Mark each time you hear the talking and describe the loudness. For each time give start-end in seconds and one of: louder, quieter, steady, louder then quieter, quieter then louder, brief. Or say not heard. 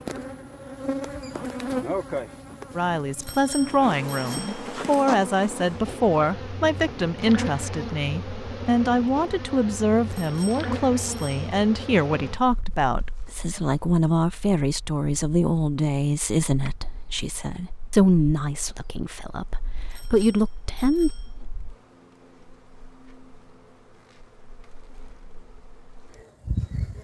2.8-21.1 steady.